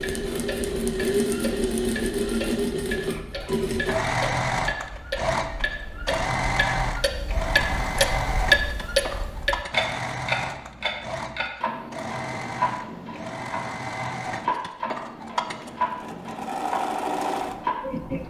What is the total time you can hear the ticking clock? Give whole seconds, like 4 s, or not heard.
18 s.